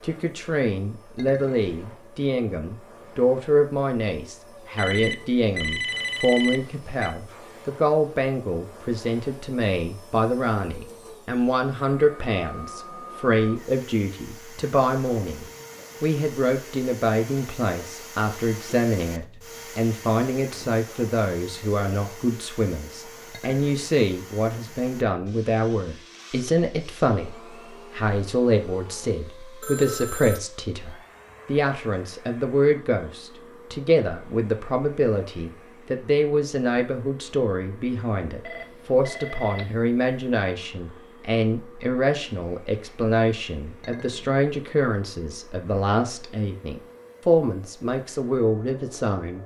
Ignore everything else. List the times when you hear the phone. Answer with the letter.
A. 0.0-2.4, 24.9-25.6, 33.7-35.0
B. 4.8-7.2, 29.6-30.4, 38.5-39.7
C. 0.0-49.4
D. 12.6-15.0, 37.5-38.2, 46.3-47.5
B.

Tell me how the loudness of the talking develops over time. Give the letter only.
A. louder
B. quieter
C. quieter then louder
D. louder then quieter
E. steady
E.